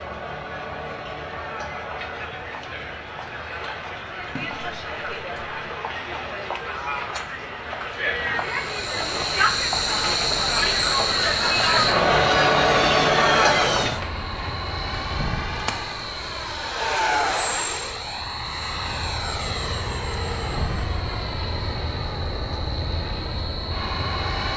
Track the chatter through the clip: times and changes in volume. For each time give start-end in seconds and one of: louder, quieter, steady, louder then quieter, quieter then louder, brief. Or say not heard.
0.0-14.0 louder.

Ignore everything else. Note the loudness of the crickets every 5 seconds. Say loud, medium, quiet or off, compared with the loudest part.
off, loud, loud, medium, medium.